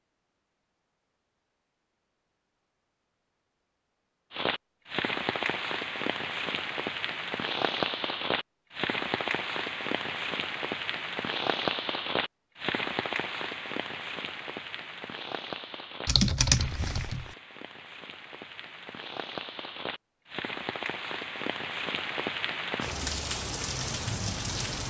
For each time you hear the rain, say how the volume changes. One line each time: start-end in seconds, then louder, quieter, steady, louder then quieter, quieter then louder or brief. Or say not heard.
4.3-24.8 quieter then louder.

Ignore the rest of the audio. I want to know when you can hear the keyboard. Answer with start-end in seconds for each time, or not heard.
16.1-17.3.